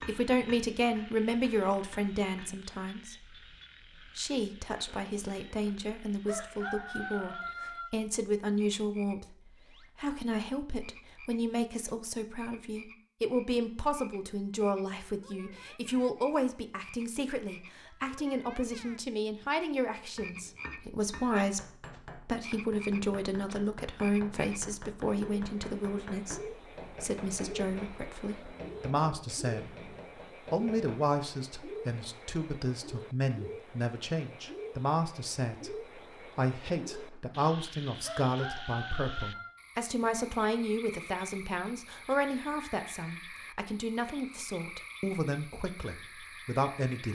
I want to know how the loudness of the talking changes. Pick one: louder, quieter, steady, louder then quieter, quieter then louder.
steady.